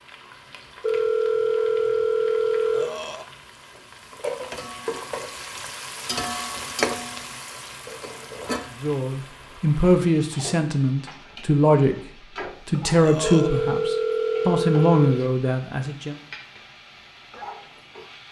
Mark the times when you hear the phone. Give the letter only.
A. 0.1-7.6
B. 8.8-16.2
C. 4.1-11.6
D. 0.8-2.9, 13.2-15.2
D.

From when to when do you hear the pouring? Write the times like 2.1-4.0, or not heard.
not heard.